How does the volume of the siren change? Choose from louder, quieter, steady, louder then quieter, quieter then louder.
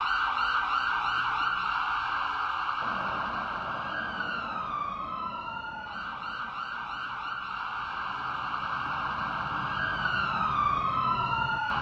quieter then louder.